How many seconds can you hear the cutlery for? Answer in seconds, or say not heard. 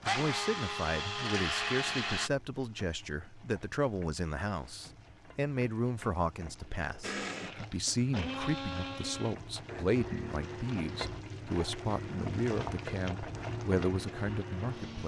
not heard.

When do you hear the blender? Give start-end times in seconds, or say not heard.
0.0-2.3, 7.0-15.0.